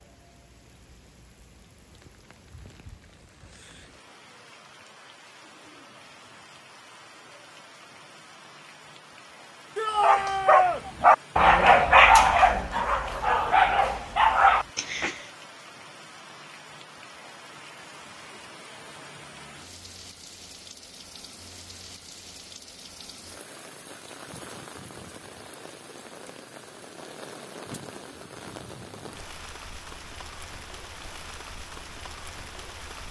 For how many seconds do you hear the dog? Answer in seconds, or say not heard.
5 s.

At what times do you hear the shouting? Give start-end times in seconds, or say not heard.
9.8-10.8.